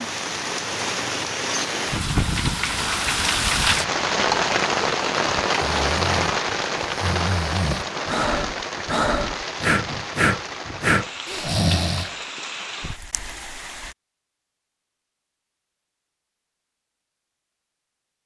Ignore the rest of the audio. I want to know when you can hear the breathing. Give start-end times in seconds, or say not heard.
5.6-12.2.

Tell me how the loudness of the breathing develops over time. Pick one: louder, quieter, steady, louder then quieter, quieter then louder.
louder.